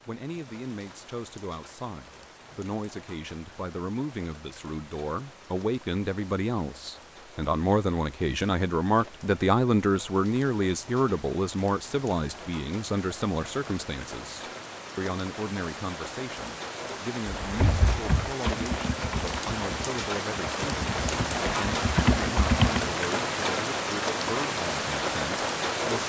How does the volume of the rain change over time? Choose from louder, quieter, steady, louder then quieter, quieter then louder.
louder.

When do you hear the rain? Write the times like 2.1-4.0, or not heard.
0.0-26.0.